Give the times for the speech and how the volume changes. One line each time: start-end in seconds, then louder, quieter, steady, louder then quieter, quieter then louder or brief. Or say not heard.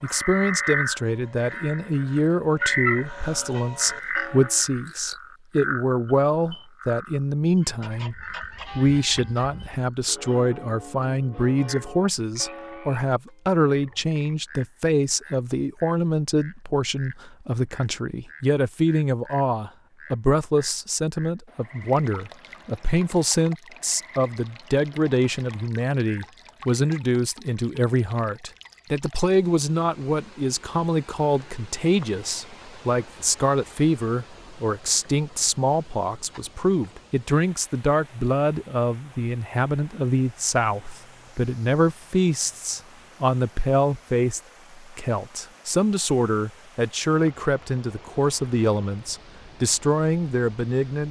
0.0-51.0 steady.